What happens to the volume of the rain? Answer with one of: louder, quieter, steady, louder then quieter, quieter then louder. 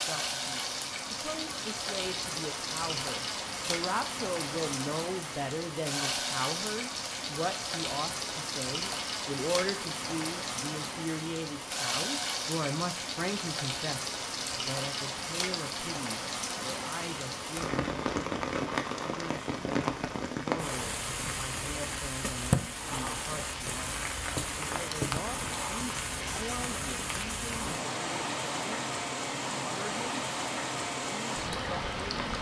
steady.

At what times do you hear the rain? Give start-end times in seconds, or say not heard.
0.0-32.3.